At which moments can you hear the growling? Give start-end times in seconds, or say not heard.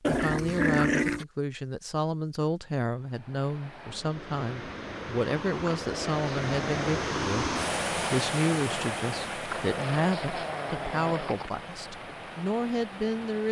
0.0-1.2, 5.7-6.9, 9.5-11.5.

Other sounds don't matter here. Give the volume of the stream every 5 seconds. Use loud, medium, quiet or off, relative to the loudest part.
medium, loud, medium.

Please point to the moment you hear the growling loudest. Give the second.
1 s.